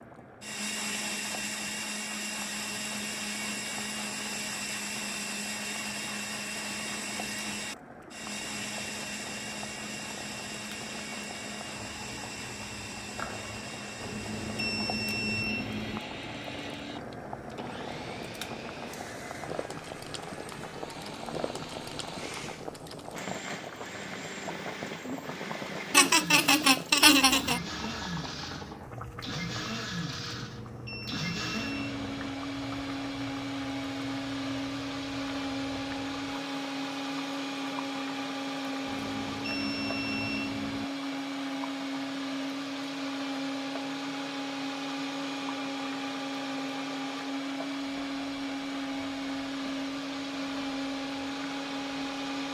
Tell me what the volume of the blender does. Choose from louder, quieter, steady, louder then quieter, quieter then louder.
quieter then louder.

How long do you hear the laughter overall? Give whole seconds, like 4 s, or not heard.
2 s.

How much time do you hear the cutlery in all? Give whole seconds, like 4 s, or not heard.
not heard.